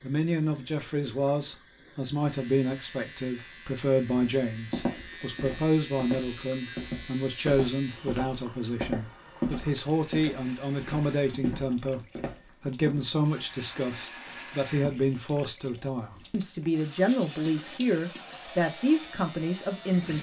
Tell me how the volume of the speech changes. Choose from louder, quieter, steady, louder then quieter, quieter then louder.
steady.